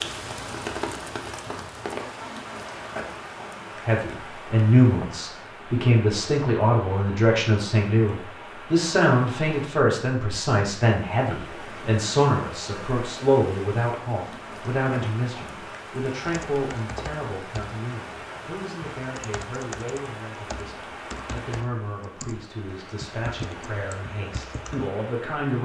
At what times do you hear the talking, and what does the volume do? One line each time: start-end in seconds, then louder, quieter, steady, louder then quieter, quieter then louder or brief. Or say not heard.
3.9-25.6 quieter.